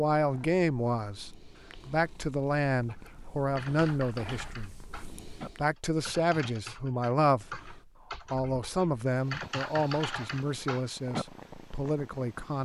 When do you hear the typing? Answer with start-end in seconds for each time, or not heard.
2.7-11.2.